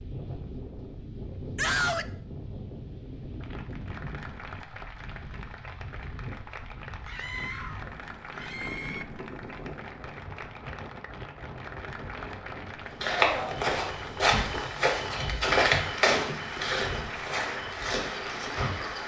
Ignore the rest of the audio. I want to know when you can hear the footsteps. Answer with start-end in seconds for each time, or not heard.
13.0-19.0.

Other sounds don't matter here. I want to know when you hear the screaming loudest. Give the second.
2 s.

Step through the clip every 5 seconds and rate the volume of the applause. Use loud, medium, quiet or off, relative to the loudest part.
medium, medium, medium, loud.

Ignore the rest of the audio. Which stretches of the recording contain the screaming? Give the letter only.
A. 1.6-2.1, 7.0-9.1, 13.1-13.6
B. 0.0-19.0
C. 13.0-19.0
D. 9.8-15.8
A.